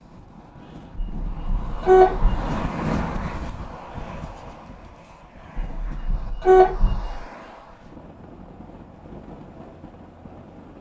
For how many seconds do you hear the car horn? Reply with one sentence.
The car horn can be heard for 3 seconds in total.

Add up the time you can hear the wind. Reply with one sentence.
The wind can be heard for 11 seconds in total.